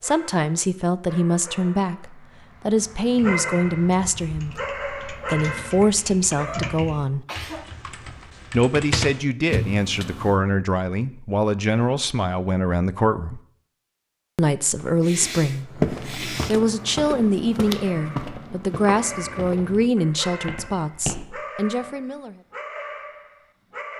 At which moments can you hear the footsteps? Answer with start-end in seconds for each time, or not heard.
14.8-21.2.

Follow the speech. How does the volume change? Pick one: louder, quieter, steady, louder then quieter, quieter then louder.
steady.